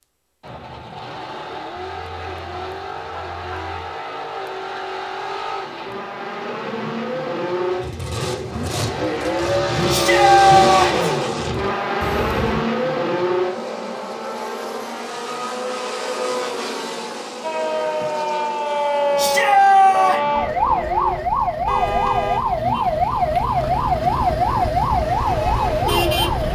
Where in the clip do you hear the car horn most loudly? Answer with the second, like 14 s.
22 s.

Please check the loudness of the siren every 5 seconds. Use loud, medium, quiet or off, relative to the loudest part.
off, off, off, loud, loud, loud.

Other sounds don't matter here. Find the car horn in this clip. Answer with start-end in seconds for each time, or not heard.
1.8-4.0, 12.0-12.7, 21.6-22.5.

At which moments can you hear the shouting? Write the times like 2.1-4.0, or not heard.
9.8-11.1, 19.1-20.2.